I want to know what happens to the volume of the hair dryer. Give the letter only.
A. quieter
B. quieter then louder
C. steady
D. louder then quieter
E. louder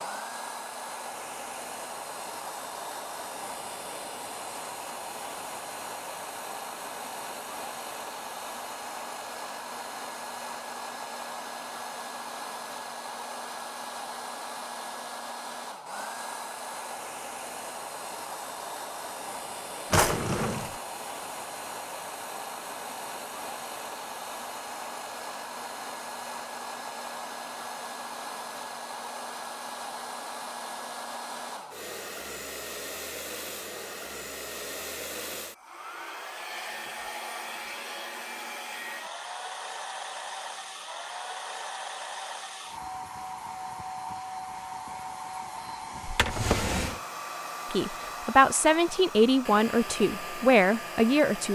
C.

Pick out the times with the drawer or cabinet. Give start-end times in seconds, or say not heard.
19.9-20.8, 46.0-47.0.